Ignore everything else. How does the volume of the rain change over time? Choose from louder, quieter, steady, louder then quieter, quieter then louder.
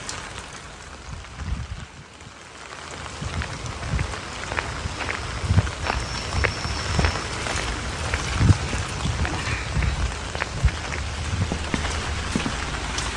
louder.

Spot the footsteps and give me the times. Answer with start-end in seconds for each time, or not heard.
3.1-12.7.